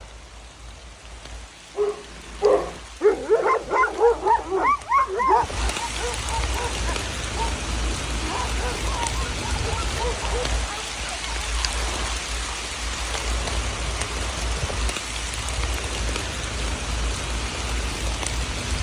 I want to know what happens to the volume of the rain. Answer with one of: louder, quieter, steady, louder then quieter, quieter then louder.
louder.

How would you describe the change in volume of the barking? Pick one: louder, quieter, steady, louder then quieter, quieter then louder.
quieter.